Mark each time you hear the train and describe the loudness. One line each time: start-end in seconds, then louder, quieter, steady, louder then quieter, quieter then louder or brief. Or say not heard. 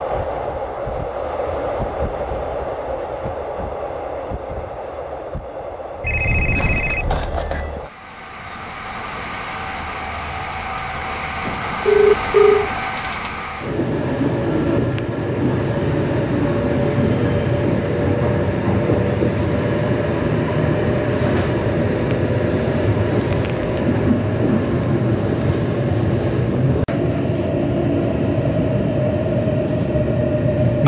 0.0-30.8 louder.